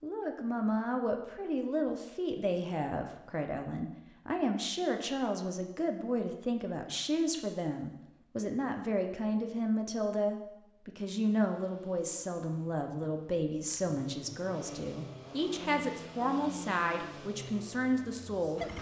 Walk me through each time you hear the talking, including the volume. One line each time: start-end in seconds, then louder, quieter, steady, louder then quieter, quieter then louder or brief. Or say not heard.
0.0-18.7 steady.